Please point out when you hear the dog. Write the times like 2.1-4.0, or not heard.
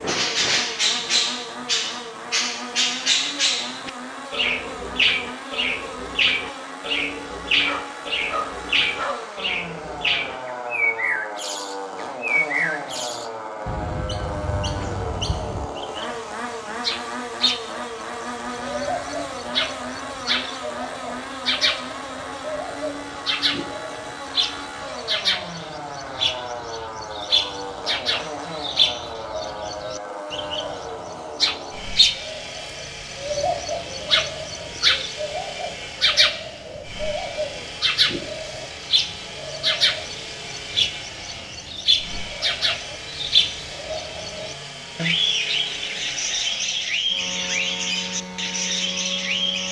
7.6-9.2.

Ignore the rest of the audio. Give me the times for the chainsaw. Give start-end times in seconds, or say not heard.
0.0-49.6.